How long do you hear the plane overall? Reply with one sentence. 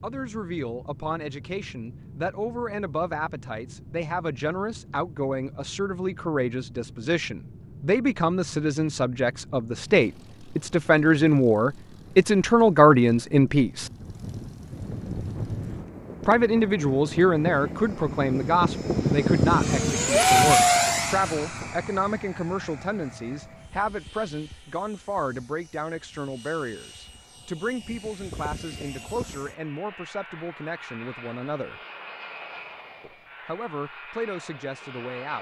You can hear the plane for 35 seconds altogether.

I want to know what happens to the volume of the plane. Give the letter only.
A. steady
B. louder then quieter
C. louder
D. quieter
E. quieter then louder
B.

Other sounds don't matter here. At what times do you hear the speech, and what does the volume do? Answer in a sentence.
The speech can be heard from 0.0 to 13.9 s, getting louder; from 16.2 to 31.8 s, getting quieter; and briefly from 33.0 to 35.3 s.